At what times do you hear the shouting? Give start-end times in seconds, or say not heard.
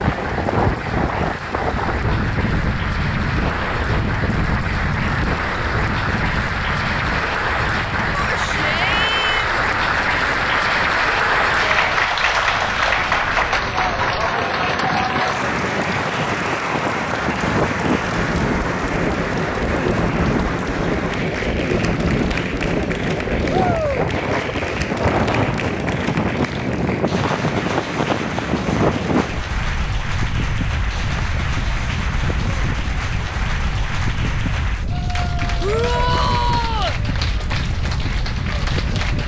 8.1-9.7, 23.4-24.1, 35.6-37.0.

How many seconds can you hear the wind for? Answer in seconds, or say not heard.
39 s.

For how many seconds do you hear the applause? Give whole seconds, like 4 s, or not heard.
39 s.